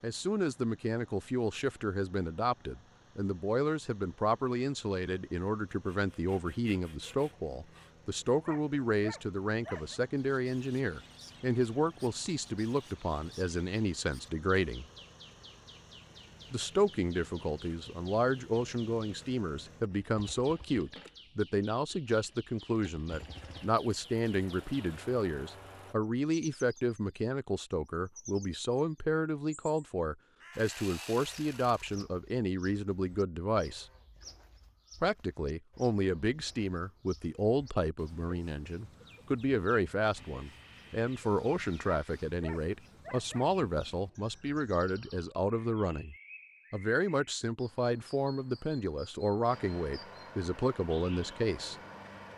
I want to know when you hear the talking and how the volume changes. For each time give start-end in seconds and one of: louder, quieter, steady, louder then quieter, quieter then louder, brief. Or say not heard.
0.0-14.8 steady
16.5-33.9 steady
35.0-51.8 steady.